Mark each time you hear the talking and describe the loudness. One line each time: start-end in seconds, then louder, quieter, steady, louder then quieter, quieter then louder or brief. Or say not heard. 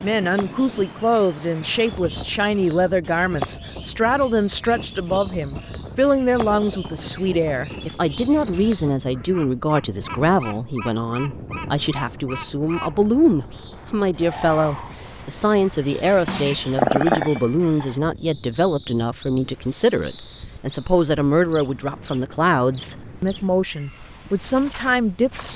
0.0-25.5 steady.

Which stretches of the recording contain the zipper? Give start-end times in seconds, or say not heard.
not heard.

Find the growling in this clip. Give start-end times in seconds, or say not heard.
16.2-17.4.